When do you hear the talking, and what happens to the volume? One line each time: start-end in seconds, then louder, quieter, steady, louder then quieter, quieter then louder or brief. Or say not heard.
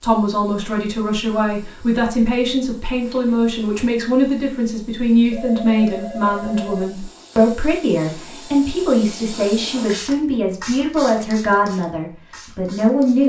0.0-13.2 steady.